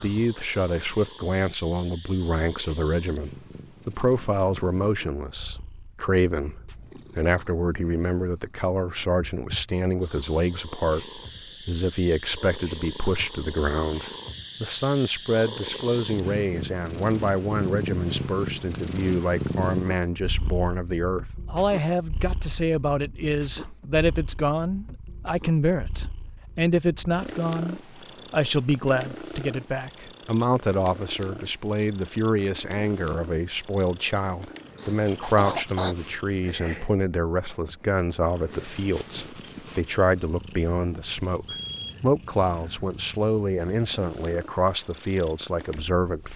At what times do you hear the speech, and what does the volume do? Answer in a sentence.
You can hear the speech from 0.0 to 46.3 s, at a steady volume.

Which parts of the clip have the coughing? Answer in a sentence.
You can hear the coughing from 34.8 to 36.0 s.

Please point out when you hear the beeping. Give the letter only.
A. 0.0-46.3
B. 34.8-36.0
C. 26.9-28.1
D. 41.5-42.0
D.